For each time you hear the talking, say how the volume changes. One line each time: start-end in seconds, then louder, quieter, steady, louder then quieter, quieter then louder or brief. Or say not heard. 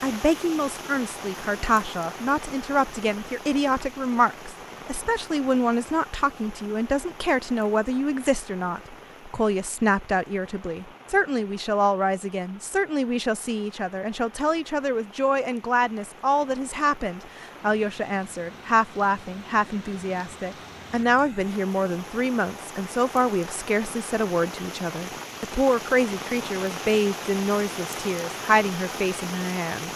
0.0-29.9 steady.